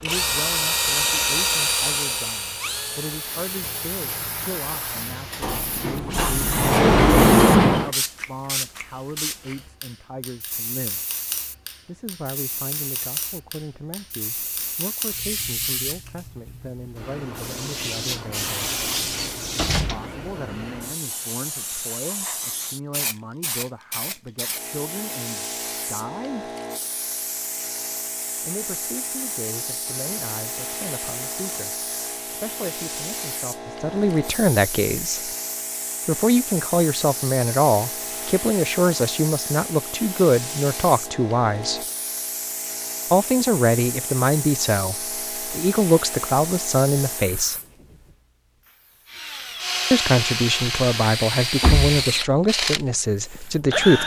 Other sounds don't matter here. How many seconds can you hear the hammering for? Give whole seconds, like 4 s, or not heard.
not heard.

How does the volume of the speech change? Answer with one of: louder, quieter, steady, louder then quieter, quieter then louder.
louder.